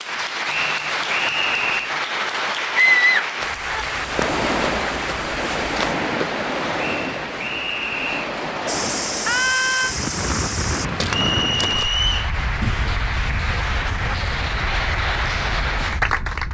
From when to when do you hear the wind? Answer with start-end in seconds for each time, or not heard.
4.0-16.4.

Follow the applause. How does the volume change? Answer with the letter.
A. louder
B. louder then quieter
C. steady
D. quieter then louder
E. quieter
D.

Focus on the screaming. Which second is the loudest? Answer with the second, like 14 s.
3 s.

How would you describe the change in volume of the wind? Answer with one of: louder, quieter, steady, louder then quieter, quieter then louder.
quieter.